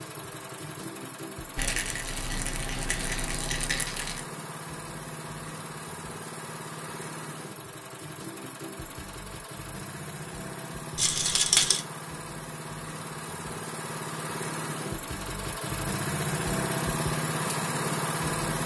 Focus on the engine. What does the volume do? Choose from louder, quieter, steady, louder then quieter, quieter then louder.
louder.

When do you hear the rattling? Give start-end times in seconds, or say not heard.
1.6-4.2, 10.9-11.8.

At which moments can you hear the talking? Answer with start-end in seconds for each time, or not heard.
not heard.